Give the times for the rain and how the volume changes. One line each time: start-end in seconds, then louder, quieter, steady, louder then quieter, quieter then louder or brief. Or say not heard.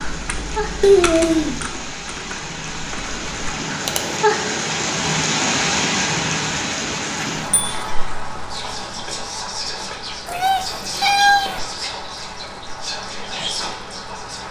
0.0-14.4 louder then quieter.